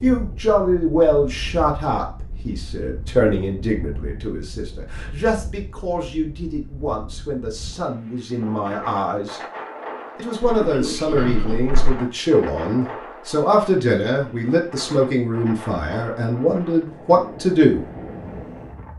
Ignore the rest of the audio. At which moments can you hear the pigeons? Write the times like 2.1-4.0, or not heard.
10.4-11.8.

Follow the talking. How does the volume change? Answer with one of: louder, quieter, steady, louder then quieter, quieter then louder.
quieter then louder.